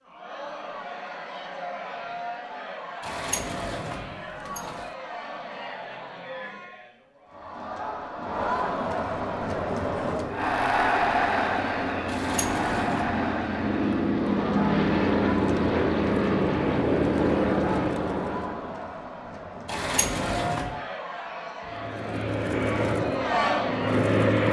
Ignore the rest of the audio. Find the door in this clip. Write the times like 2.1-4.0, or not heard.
3.0-4.9, 12.1-13.2, 19.6-20.8.